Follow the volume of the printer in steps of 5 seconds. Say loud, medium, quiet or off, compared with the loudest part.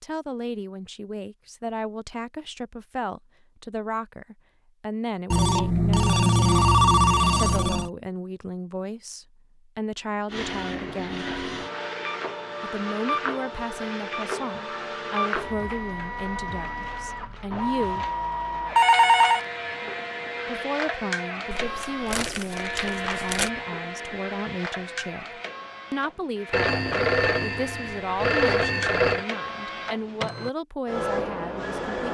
off, off, loud, loud, loud, medium, loud.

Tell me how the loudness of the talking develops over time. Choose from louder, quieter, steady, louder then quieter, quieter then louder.
steady.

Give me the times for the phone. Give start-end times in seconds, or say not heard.
5.3-7.9, 18.8-19.4, 26.5-29.2.